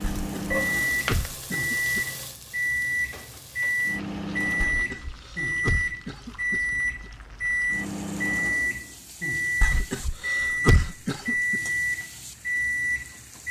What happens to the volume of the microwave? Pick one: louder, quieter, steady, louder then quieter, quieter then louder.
steady.